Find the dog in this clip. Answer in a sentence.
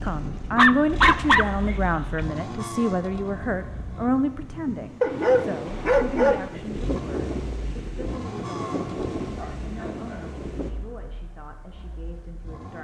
You can hear the dog from 0.6 to 2.2 s, from 5.0 to 6.5 s and from 9.3 to 10.4 s.